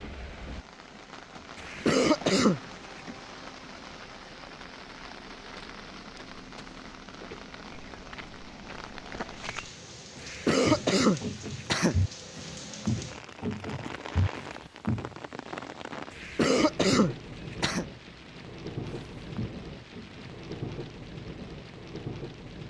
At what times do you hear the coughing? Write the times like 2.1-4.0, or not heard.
1.6-2.6, 10.2-11.9, 16.1-17.9.